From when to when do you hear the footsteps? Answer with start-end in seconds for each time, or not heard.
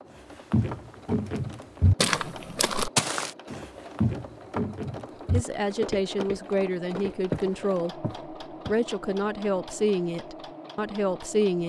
0.5-8.8.